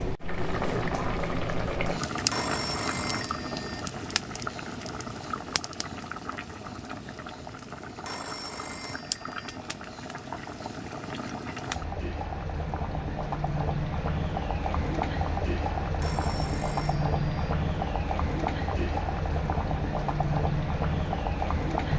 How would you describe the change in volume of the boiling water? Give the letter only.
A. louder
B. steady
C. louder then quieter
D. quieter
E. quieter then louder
E.